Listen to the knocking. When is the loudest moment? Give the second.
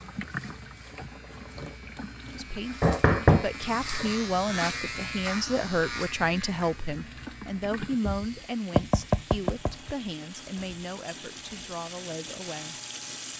3 s.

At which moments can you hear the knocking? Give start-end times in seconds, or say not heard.
2.8-3.5, 8.0-9.9.